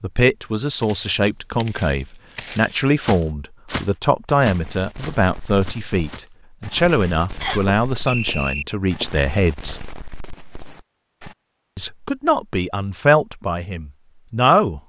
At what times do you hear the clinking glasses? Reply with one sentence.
The clinking glasses can't be heard in this clip.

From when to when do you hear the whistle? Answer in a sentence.
You can hear the whistle from 7.4 to 8.7 s.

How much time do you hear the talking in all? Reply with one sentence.
The talking can be heard for 13 seconds in total.